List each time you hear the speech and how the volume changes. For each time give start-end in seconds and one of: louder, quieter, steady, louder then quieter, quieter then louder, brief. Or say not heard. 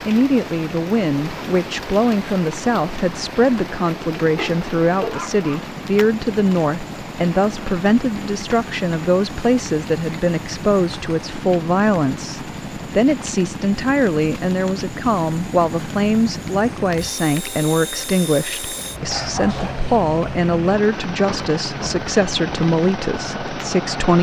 0.1-24.1 steady.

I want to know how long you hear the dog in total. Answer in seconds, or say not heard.
2 s.